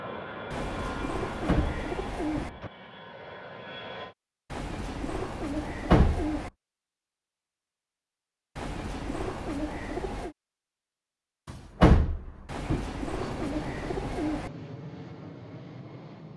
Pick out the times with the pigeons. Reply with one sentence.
The pigeons can be heard from 0.5 to 2.5 s, from 4.5 to 6.5 s, from 8.6 to 10.3 s and from 12.4 to 14.5 s.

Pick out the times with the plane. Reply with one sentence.
You can hear the plane from 0.0 to 4.2 s and from 13.1 to 16.3 s.